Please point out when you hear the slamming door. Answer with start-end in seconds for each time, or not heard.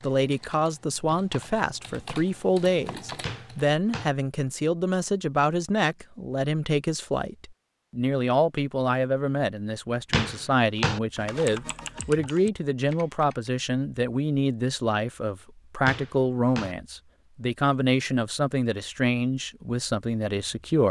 3.2-4.1, 10.1-11.0, 15.8-16.8.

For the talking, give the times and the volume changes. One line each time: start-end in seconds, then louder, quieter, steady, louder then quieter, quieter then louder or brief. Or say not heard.
0.0-20.8 steady.